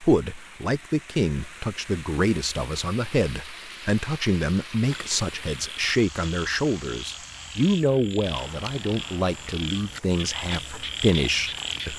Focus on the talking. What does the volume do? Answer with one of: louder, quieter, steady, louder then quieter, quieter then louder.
steady.